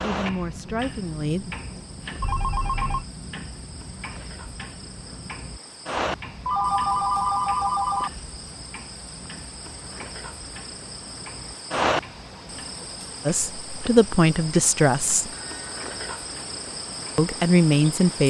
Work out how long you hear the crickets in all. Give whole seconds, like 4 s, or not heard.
18 s.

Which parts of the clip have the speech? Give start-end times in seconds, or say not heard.
0.0-1.5, 13.2-15.3, 17.1-18.2.